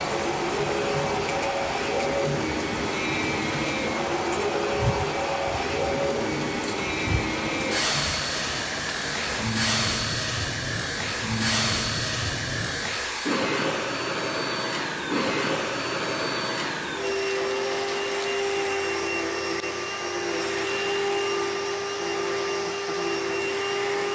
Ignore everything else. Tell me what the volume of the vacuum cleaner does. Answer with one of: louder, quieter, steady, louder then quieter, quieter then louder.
steady.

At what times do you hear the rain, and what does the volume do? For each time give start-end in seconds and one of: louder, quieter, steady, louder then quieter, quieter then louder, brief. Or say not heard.
0.0-13.0 steady.